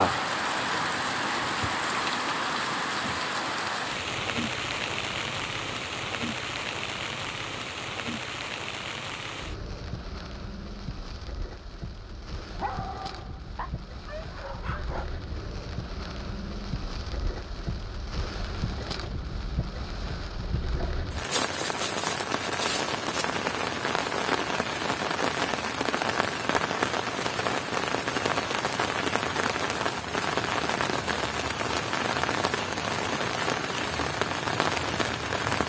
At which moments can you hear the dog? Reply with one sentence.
The dog can be heard from 12.3 to 15.1 s.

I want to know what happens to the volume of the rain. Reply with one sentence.
The loudness of the rain goes down, then up.